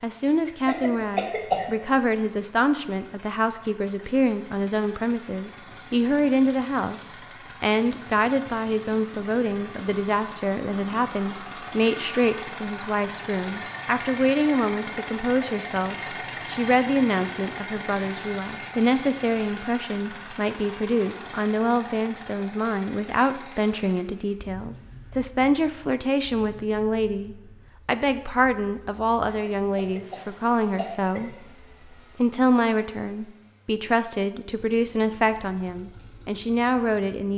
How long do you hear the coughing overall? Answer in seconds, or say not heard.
3 s.